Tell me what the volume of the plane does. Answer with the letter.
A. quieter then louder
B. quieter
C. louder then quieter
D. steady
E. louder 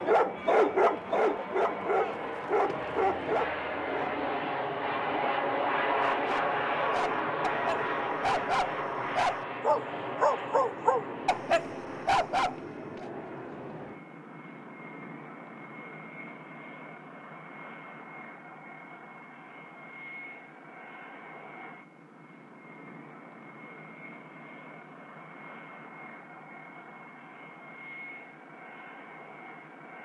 B.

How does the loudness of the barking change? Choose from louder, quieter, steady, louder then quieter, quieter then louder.
quieter then louder.